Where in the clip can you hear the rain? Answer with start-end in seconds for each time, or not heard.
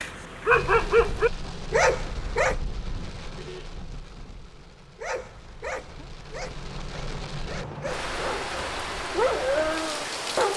0.0-10.5.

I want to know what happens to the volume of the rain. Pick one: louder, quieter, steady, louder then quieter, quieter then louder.
quieter then louder.